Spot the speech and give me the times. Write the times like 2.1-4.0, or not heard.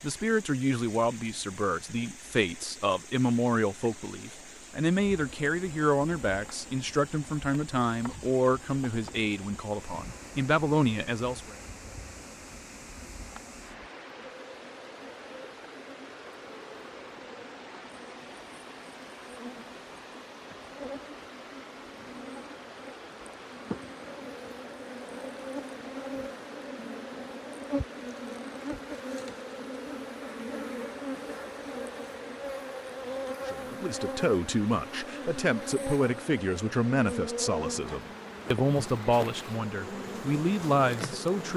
0.0-11.6, 33.5-41.5.